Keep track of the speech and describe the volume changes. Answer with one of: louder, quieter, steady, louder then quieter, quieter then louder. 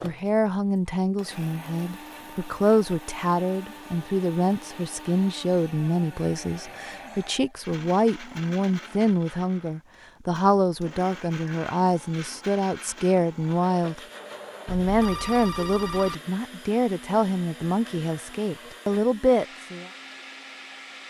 steady.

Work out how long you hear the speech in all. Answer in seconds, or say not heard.
19 s.